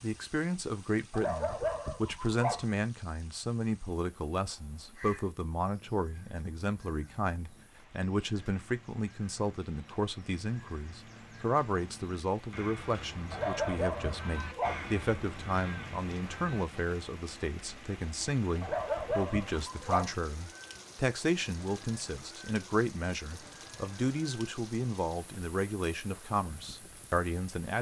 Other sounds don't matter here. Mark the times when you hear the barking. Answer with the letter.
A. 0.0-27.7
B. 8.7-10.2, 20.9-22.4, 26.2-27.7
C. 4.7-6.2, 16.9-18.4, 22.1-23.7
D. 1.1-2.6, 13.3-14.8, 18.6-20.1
D.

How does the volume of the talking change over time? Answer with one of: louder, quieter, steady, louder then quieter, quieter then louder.
steady.